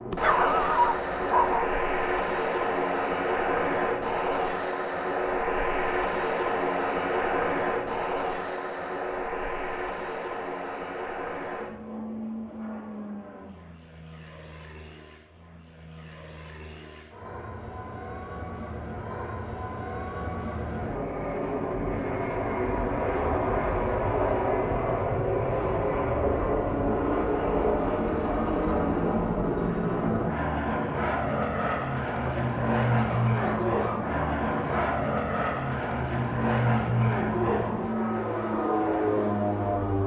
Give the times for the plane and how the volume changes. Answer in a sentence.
You can hear the plane from 0.0 to 40.0 s, getting quieter then louder.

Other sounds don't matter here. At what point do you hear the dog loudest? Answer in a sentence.
The volume of the dog peaks at 1 second.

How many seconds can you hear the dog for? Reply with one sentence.
You can hear the dog for 4 seconds altogether.